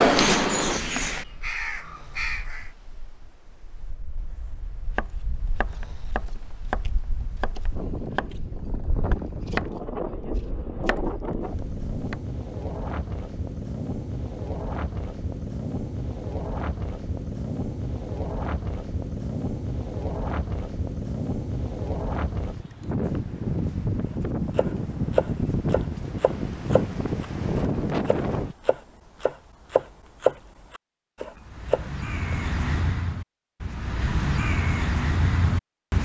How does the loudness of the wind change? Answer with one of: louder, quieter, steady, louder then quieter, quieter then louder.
louder.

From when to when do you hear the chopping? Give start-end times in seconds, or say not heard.
4.0-12.2, 24.1-32.4.